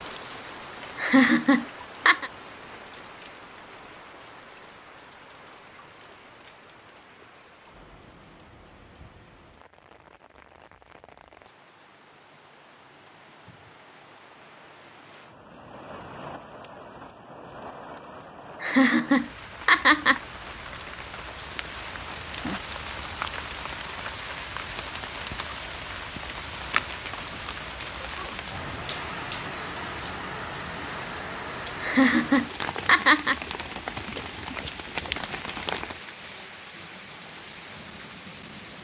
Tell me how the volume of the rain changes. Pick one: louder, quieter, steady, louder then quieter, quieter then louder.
quieter then louder.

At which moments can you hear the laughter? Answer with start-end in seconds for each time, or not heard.
0.9-2.3, 18.6-20.2, 31.8-33.4.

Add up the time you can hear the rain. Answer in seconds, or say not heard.
39 s.